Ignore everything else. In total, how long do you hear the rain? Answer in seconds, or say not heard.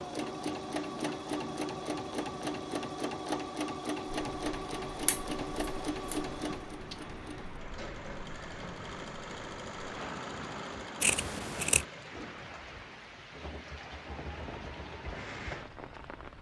12 s.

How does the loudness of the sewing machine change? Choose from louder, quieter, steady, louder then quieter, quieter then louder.
quieter.